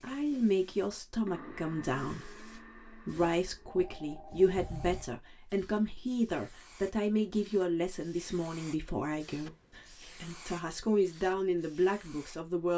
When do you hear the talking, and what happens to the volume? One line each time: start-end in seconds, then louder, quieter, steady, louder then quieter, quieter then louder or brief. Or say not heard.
0.0-12.7 steady.